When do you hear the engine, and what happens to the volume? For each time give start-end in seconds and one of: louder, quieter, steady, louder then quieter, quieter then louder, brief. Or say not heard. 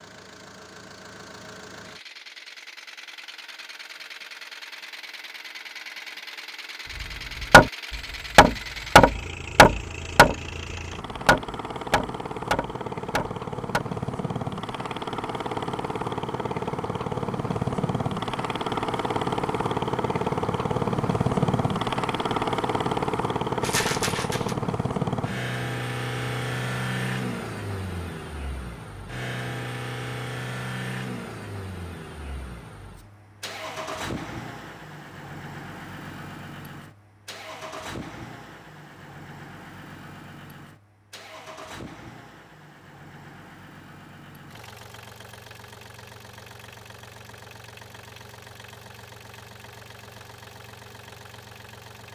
0.0-52.0 louder then quieter.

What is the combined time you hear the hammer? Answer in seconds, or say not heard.
6 s.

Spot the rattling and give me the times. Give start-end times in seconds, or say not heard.
23.6-24.6.